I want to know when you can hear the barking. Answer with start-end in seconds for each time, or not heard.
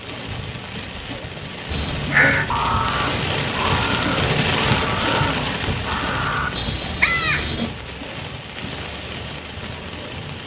not heard.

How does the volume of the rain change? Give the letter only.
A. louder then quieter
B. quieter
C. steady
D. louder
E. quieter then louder
A.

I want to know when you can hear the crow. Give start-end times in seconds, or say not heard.
1.7-7.7.